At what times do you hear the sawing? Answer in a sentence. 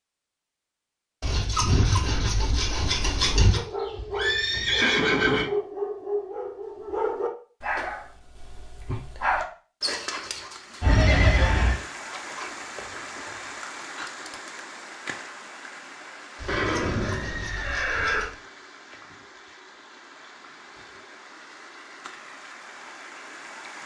You can hear the sawing from 1.2 to 3.6 s and from 16.4 to 18.4 s.